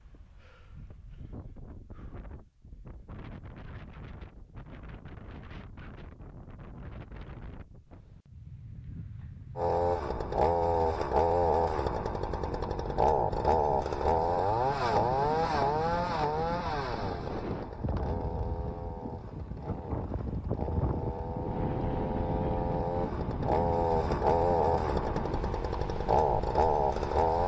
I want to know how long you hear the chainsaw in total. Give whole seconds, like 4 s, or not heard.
18 s.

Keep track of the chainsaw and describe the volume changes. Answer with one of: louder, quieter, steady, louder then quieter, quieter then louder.
quieter then louder.